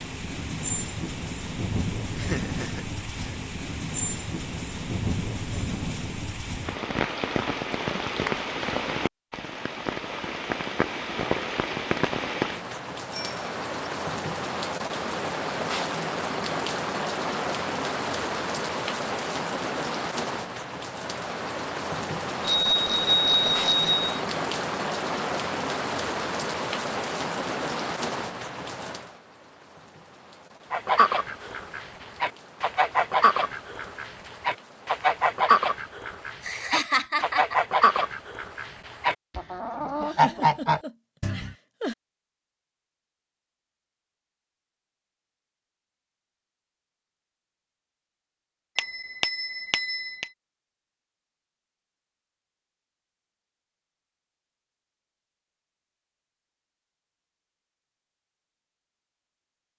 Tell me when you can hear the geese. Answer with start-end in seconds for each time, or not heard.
30.7-41.5.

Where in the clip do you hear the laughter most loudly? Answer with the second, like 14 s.
37 s.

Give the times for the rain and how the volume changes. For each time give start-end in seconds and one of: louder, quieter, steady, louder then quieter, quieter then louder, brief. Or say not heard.
0.0-35.4 quieter.